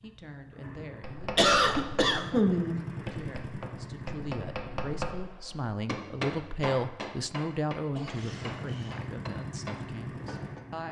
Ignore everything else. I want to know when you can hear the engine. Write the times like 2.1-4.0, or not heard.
0.0-5.3, 8.2-10.8.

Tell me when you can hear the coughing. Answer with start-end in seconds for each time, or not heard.
1.4-2.9, 7.9-8.9.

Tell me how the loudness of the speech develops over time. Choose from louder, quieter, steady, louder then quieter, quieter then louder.
louder then quieter.